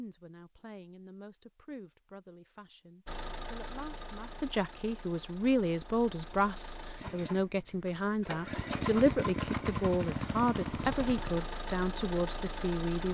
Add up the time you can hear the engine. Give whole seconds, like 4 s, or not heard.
10 s.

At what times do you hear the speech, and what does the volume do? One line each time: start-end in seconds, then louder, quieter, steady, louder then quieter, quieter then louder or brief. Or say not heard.
0.0-13.0 louder.